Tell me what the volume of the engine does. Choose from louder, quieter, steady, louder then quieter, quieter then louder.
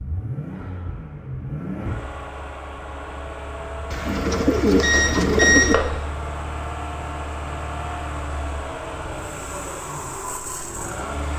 steady.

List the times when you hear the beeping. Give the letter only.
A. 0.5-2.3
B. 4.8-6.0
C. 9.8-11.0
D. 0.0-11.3
B.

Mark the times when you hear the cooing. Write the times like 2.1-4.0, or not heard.
3.9-5.8.